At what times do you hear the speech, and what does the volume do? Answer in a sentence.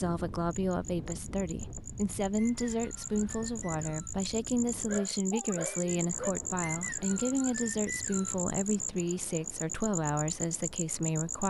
The speech can be heard from 0.0 to 11.4 s, at a steady volume.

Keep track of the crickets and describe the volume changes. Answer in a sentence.
The volume of the crickets goes up.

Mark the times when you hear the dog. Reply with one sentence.
The dog can be heard from 4.8 to 6.3 s.